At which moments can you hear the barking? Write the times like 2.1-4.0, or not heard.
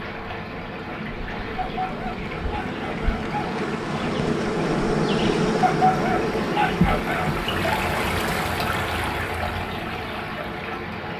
1.6-3.5, 5.6-7.2.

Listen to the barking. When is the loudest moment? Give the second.
6 s.